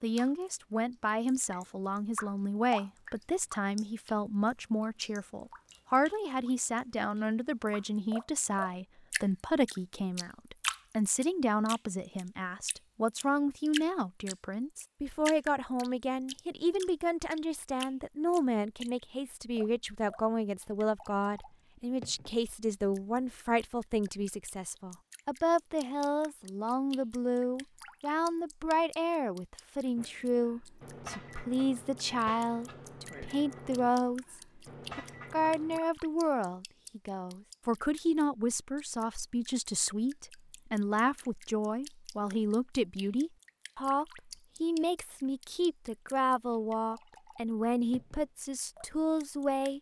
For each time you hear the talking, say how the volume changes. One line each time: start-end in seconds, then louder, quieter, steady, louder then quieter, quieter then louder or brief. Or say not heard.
0.0-49.7 steady.